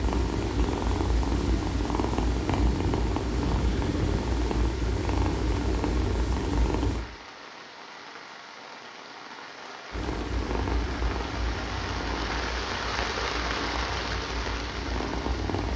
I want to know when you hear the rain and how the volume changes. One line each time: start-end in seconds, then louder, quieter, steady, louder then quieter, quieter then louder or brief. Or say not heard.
0.0-15.7 louder.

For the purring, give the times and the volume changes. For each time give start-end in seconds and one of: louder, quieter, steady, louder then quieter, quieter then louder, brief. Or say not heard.
0.0-7.0 steady
9.9-15.7 quieter then louder.